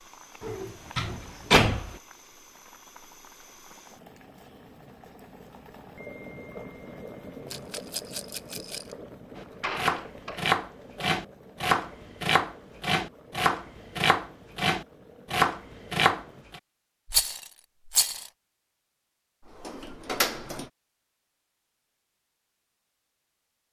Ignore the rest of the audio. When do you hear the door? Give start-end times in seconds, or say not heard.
0.4-1.9, 9.4-10.5, 19.4-20.7.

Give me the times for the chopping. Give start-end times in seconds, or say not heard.
9.3-16.6.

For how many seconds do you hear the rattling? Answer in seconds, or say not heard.
3 s.